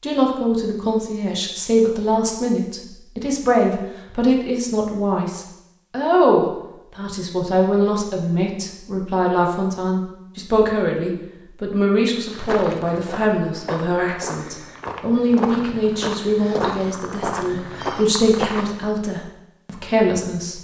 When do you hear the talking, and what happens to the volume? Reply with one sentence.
The talking can be heard from 0.0 to 20.6 s, at a steady volume.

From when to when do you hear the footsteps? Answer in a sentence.
You can hear the footsteps from 12.2 to 18.9 s.